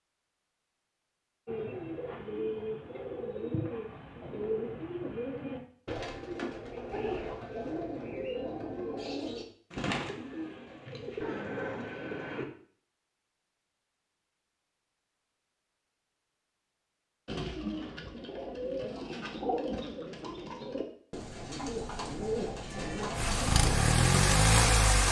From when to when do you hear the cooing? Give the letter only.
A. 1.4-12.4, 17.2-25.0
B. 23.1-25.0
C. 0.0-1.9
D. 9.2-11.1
A.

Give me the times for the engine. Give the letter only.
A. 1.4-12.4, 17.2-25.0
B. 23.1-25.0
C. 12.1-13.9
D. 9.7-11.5
B.